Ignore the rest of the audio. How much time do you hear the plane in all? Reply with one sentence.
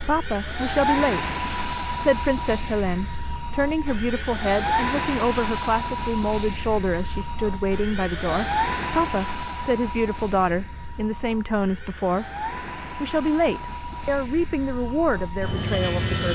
You can hear the plane for 16 seconds altogether.